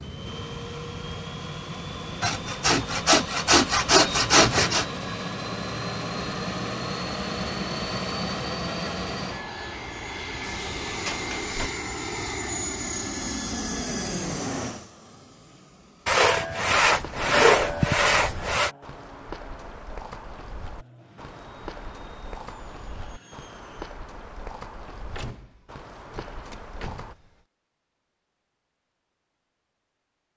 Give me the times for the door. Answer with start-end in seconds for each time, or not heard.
4.1-4.9, 10.4-11.7, 25.1-27.4.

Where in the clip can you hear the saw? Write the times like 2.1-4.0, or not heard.
2.2-4.8, 16.1-18.7.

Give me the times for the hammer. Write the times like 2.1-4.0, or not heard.
not heard.